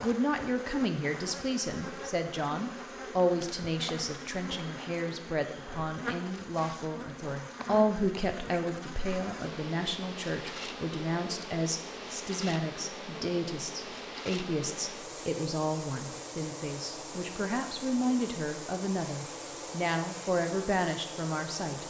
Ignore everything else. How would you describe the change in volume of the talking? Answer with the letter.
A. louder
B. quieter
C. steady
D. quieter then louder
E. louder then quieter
C.